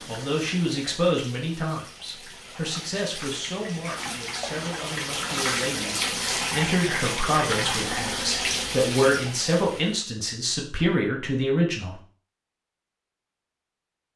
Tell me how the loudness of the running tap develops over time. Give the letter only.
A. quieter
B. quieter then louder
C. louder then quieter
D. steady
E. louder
E.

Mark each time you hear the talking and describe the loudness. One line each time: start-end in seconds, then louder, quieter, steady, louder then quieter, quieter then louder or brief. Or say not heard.
0.1-12.0 quieter then louder.